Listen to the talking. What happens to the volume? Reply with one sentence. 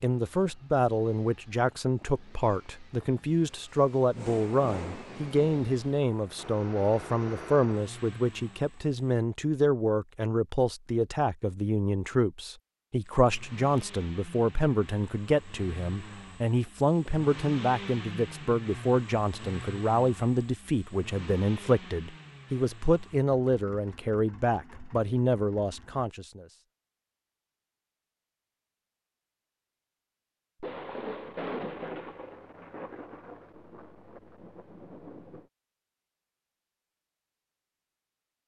The loudness of the talking stays about the same.